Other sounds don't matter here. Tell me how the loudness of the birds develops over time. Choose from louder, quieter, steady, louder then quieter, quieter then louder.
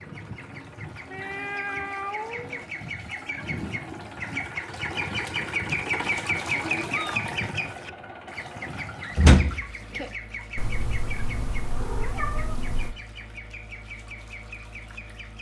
louder then quieter.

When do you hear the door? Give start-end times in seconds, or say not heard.
9.2-10.1.